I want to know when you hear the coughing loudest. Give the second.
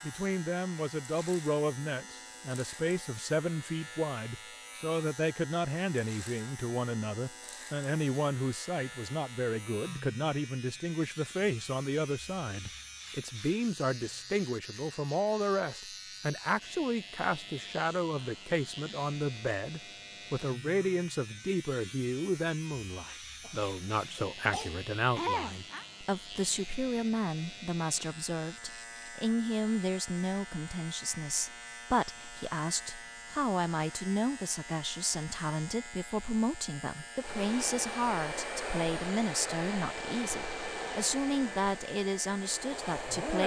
25 s.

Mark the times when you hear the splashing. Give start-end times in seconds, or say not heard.
not heard.